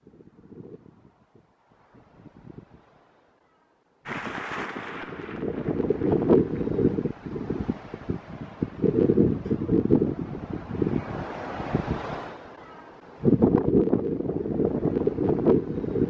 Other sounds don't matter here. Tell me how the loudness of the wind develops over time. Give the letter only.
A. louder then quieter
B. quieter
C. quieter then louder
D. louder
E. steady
D.